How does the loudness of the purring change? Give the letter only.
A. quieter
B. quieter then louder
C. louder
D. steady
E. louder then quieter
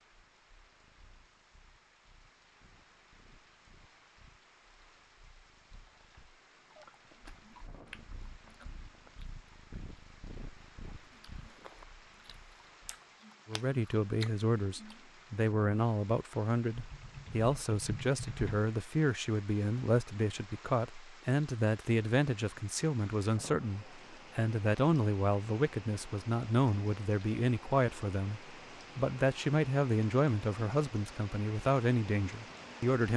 C.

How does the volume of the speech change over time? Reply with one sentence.
The volume of the speech stays about the same.